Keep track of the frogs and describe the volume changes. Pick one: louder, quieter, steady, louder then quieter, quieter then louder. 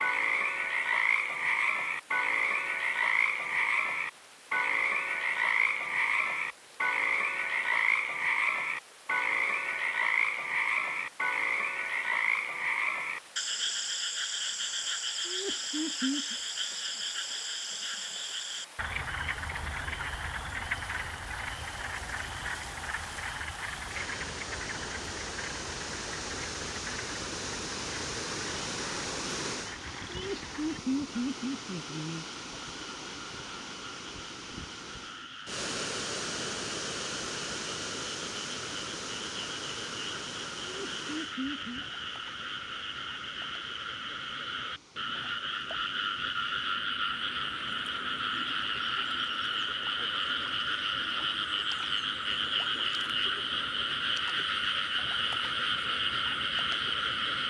quieter then louder.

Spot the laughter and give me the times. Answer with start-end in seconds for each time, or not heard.
15.2-16.4, 30.1-32.2, 40.6-41.9.